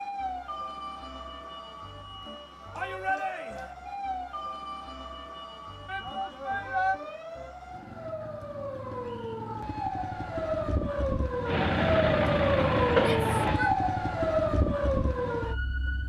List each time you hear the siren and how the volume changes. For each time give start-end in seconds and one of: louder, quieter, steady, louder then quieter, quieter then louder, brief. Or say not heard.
0.0-16.0 louder.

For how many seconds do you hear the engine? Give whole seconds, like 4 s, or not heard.
2 s.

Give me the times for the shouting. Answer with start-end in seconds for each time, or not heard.
2.7-3.8, 5.8-7.0, 12.9-13.8.